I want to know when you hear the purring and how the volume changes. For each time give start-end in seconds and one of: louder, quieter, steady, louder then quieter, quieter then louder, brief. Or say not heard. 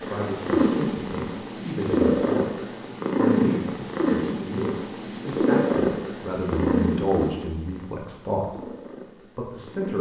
0.0-9.9 quieter.